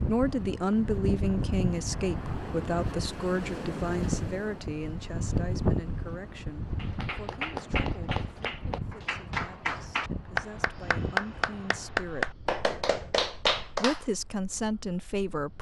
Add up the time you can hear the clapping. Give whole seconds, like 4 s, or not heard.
7 s.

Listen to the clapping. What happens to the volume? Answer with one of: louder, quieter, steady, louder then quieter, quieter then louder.
louder.